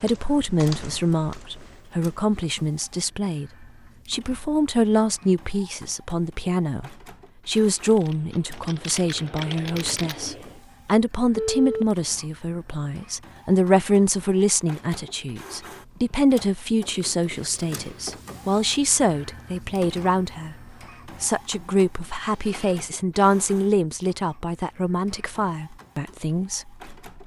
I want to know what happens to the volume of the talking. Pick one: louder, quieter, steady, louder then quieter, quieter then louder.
steady.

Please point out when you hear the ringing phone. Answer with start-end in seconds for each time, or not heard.
11.3-11.8, 22.2-22.9.